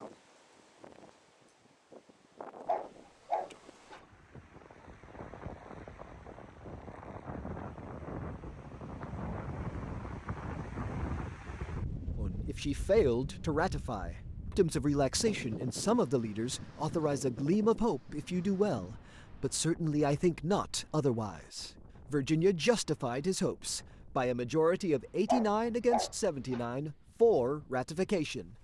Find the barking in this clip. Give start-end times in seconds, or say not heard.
2.6-4.0, 25.2-26.6.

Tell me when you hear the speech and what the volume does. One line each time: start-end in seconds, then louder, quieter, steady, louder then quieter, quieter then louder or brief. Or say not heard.
12.2-28.5 steady.